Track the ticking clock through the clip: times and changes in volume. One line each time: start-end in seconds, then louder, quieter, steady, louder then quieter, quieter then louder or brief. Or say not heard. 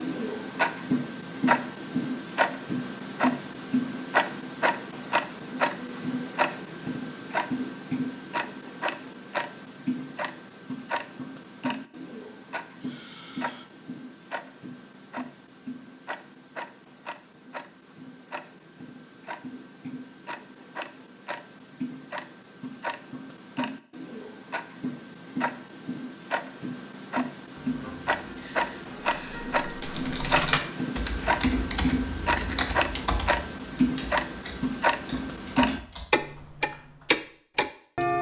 0.0-38.1 quieter then louder.